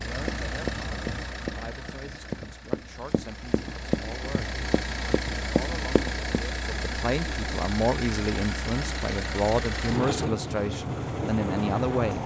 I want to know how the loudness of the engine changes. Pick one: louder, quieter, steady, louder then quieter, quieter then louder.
louder.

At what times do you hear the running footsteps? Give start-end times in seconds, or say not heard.
0.2-6.4.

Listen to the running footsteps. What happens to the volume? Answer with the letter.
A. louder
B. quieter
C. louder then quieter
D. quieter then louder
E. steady
D.